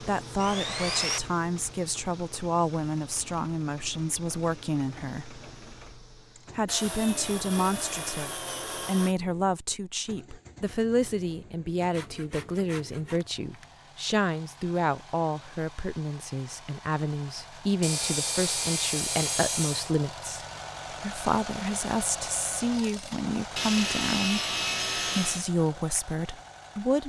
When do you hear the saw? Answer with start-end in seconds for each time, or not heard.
0.4-1.2, 6.7-9.2, 11.8-13.8, 17.8-19.9, 23.6-25.4.